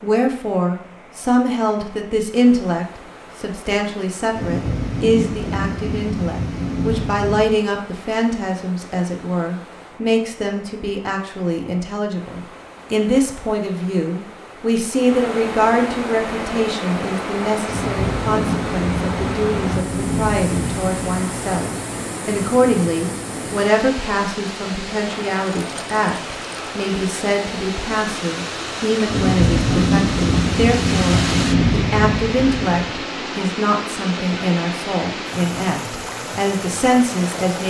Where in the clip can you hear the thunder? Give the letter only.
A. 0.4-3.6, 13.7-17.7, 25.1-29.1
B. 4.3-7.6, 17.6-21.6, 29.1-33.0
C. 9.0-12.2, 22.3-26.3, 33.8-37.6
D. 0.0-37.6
B.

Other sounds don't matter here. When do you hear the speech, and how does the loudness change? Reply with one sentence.
The speech can be heard from 0.0 to 37.6 s, at a steady volume.